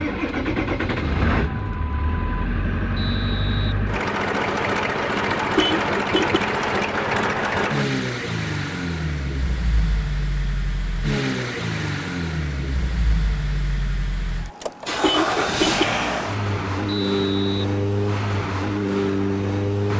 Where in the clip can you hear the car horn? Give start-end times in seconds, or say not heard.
5.5-6.4, 15.0-15.8.